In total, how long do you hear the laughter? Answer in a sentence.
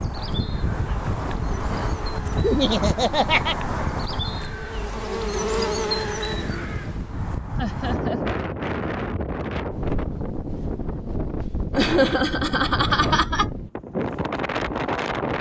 The laughter can be heard for 4 seconds in total.